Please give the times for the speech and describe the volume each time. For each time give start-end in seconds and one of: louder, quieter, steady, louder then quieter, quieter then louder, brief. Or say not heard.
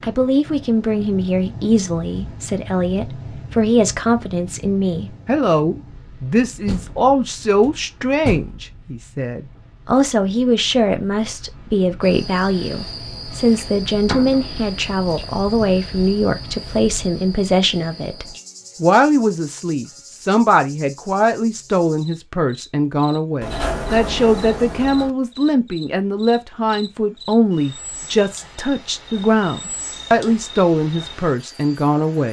0.0-32.2 steady.